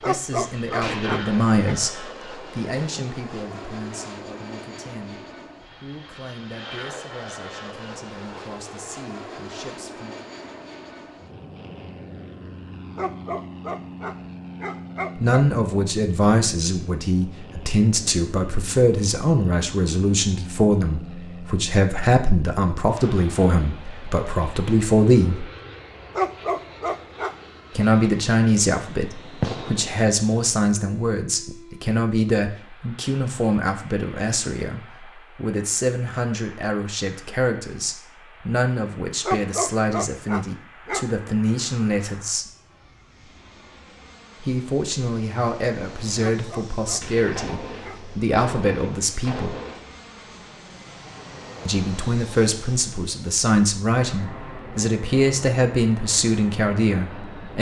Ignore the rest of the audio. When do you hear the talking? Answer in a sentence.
You can hear the talking from 0.0 to 5.2 s, from 5.8 to 10.2 s, from 15.2 to 25.4 s, from 27.8 to 42.5 s, from 44.4 to 49.5 s and from 51.6 to 57.5 s.